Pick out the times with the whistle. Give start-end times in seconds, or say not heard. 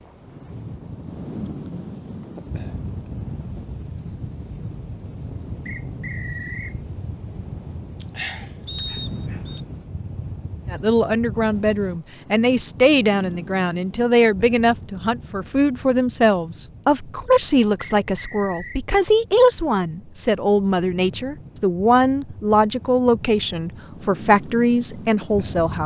5.7-6.8, 8.7-9.6, 17.9-18.8.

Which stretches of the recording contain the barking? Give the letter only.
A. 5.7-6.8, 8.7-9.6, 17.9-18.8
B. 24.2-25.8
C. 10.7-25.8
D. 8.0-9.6
D.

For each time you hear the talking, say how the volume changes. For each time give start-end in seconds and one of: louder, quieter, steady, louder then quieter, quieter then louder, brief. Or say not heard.
10.7-25.8 steady.